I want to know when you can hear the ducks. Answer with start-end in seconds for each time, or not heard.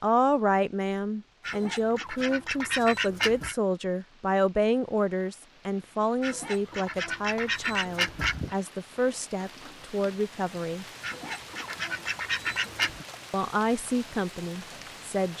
1.4-3.5, 6.2-8.6, 11.0-13.1.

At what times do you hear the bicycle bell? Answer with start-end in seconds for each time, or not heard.
not heard.